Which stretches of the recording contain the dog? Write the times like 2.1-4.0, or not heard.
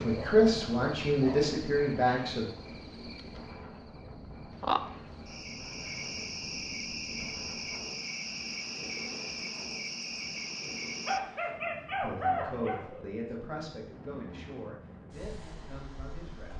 0.1-1.6, 11.1-13.1.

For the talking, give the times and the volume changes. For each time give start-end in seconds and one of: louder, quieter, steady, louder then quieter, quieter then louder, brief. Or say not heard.
0.0-2.5 brief
12.0-16.5 quieter.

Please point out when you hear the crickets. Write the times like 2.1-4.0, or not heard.
0.0-11.2.